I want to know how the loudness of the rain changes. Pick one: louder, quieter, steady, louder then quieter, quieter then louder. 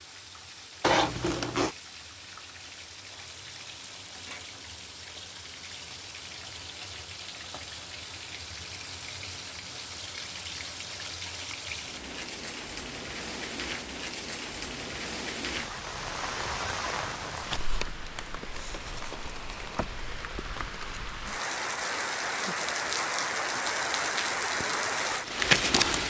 louder.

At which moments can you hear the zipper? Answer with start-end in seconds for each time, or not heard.
0.8-1.8.